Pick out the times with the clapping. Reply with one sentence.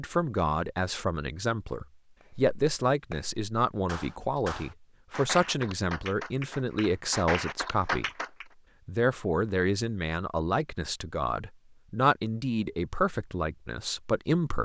You can hear the clapping from 2.3 to 8.4 s.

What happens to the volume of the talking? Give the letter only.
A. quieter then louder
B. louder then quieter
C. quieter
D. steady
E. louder
D.